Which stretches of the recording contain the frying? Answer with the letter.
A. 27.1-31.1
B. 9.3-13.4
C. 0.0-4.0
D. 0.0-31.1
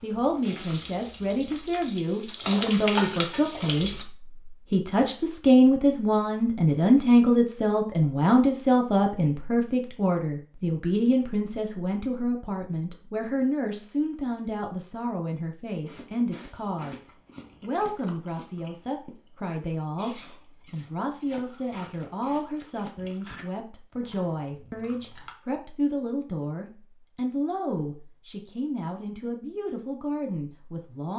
C.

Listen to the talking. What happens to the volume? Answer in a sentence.
The loudness of the talking goes down.